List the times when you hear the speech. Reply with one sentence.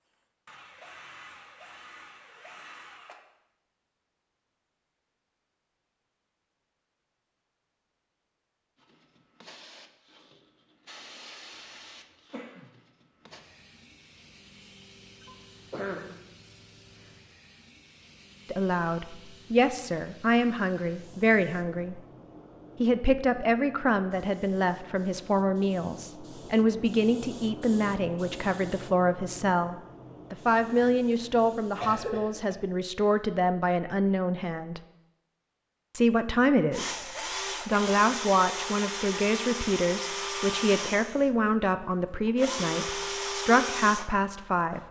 You can hear the speech from 18.4 to 22.0 s, from 22.8 to 34.8 s, from 35.9 to 37.0 s and from 37.6 to 44.8 s.